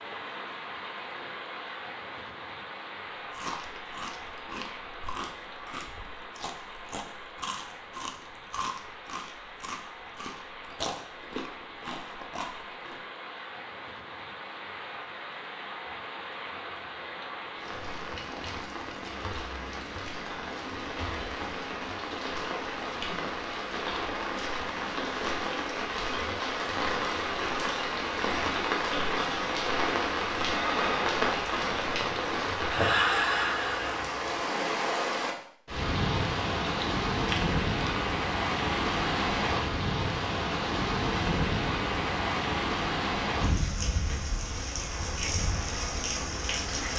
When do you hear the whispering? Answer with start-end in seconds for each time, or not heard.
not heard.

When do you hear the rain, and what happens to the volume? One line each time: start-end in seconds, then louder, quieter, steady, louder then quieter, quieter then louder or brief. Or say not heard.
0.0-46.9 louder.